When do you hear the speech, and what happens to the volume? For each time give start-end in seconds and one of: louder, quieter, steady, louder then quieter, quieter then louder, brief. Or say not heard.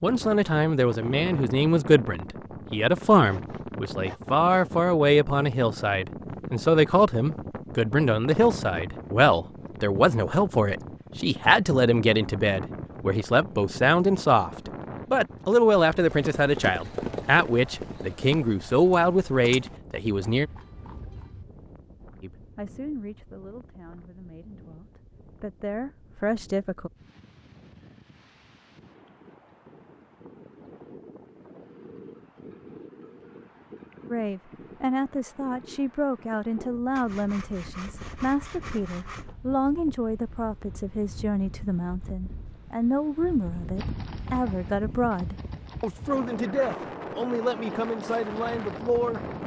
0.0-20.5 steady
22.2-26.9 quieter then louder
34.1-49.2 steady.